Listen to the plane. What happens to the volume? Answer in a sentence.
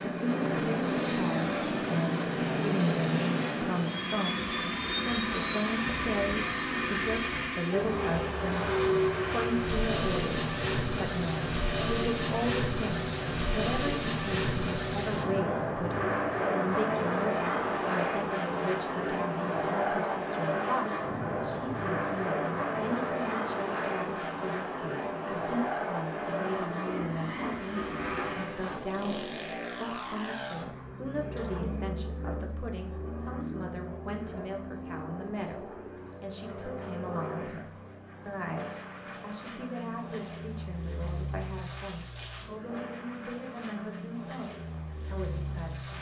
The volume of the plane goes down.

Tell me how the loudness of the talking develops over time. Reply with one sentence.
The volume of the talking goes down.